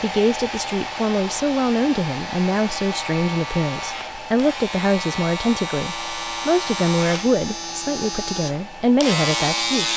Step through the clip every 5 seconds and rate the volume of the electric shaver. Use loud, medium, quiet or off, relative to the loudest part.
medium, loud.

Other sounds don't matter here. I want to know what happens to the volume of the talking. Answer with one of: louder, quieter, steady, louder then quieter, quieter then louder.
steady.